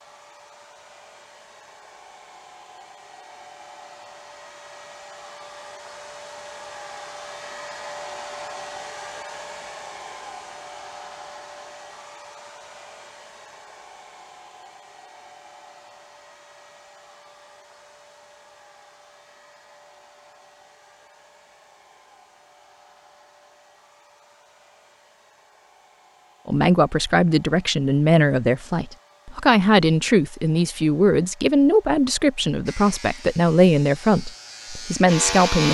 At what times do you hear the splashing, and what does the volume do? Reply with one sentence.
The splashing can't be heard in this clip.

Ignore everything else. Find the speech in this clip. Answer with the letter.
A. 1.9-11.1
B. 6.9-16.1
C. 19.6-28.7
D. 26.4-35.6
D.